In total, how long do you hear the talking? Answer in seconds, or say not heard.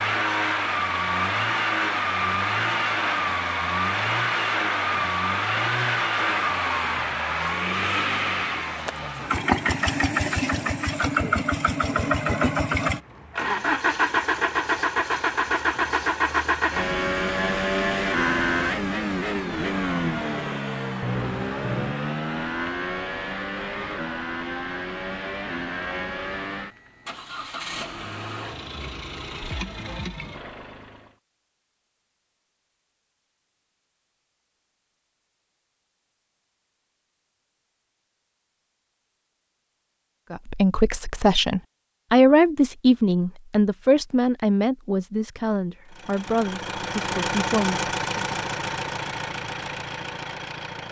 8 s.